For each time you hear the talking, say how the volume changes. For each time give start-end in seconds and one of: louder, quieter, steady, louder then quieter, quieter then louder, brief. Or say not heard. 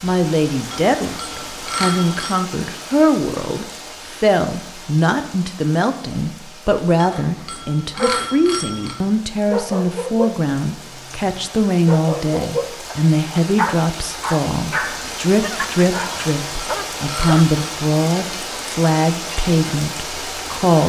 0.0-20.8 steady.